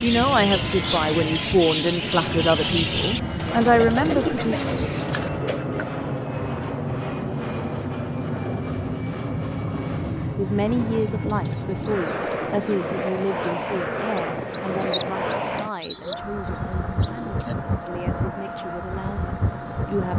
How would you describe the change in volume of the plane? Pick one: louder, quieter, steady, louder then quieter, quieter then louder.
steady.